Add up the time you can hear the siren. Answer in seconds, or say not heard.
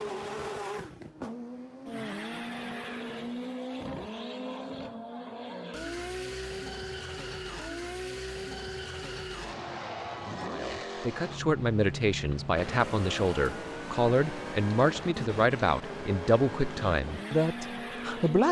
not heard.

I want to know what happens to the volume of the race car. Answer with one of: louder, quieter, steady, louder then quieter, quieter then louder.
steady.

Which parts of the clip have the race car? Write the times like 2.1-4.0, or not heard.
0.0-18.4.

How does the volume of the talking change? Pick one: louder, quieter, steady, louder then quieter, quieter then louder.
steady.